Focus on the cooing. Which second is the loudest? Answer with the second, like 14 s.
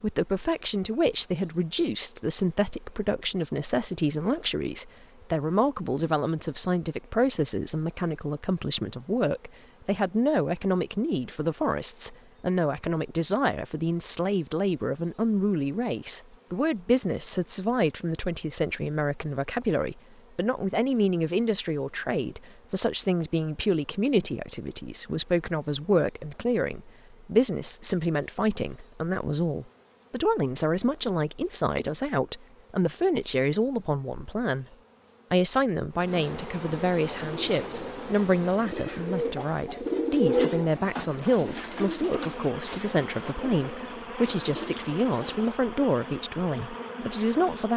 40 s.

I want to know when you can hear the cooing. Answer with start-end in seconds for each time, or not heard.
37.0-45.5.